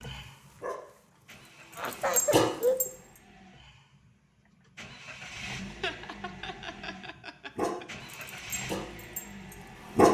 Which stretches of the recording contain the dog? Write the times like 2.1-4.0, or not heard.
0.0-2.9, 7.5-10.1.